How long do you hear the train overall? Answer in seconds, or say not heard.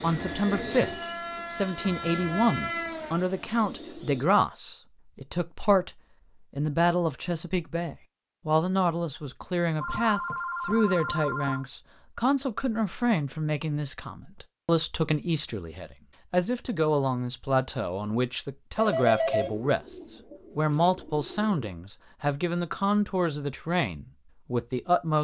3 s.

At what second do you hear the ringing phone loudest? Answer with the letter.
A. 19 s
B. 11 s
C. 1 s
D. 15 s
A.